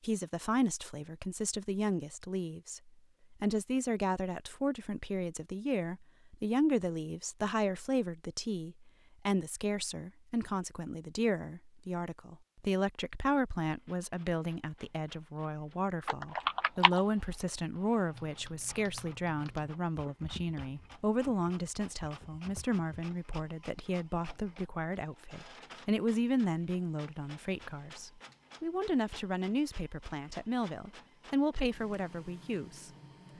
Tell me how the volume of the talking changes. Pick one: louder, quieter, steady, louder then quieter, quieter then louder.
steady.